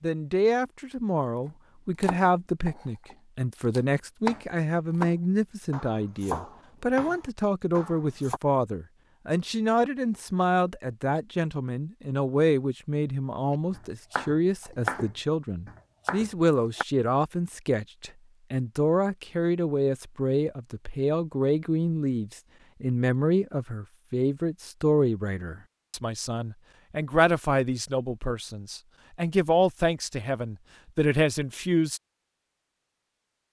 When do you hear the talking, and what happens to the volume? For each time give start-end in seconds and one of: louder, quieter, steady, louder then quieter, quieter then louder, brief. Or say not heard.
0.0-32.0 steady.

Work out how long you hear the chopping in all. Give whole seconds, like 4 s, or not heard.
10 s.